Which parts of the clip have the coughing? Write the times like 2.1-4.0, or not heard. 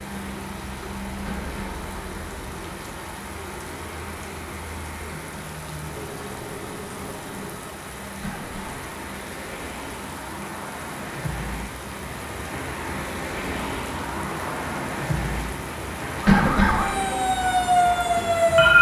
1.2-1.8, 8.2-8.8, 16.2-16.9.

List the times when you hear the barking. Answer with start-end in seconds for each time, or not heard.
not heard.